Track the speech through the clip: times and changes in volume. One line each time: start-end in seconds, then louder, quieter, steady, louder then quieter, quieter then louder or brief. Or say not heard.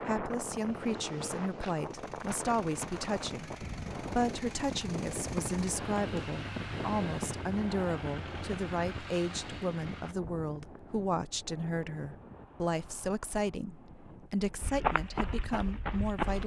0.0-16.4 steady.